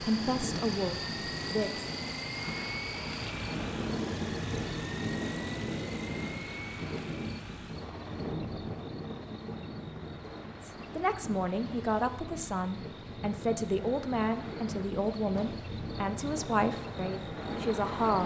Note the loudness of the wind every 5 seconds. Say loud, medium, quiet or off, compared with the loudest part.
loud, loud, medium, loud.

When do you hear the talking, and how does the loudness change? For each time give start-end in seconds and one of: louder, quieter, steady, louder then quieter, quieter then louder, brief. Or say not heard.
0.0-1.9 brief
10.7-18.2 steady.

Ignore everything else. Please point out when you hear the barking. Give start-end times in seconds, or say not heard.
not heard.